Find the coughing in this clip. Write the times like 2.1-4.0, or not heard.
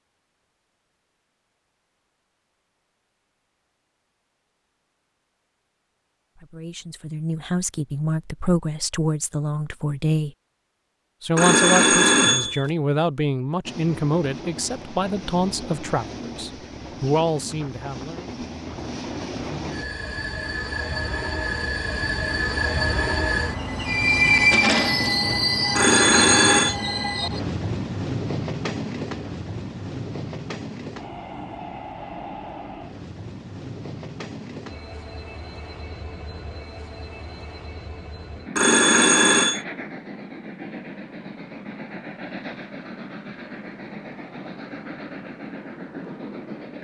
not heard.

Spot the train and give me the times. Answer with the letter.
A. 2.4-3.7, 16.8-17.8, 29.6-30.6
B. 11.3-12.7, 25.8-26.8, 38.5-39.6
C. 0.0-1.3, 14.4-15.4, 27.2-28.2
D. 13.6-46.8
D.